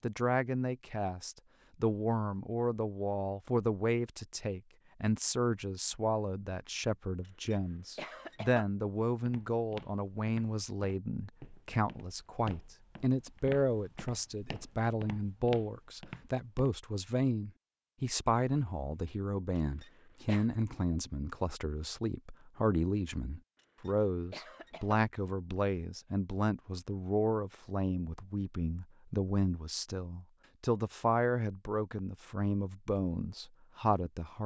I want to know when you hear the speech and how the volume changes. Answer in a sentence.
The speech can be heard from 0.0 to 34.4 s, at a steady volume.